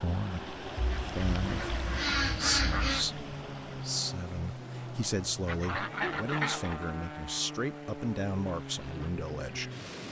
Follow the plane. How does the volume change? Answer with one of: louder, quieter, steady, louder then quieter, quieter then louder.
steady.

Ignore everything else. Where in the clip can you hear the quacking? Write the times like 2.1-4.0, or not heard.
0.8-3.1, 5.5-6.9.